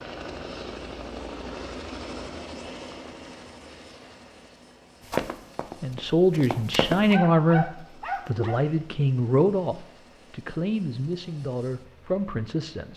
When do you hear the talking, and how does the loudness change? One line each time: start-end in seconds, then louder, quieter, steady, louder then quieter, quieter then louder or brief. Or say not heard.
5.8-12.9 quieter.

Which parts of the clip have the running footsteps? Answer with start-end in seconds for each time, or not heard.
5.1-7.0.